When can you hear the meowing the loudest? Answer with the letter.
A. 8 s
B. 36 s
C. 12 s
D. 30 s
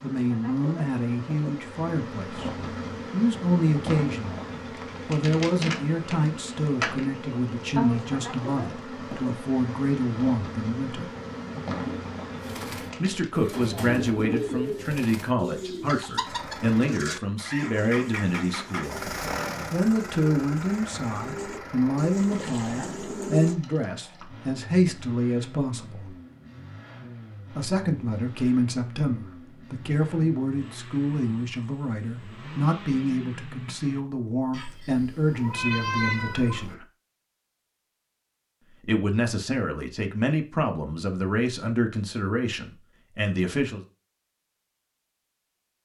B.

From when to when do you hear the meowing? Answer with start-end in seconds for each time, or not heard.
34.5-36.8.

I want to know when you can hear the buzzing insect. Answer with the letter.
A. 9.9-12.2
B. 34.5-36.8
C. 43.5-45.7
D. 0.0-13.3
D.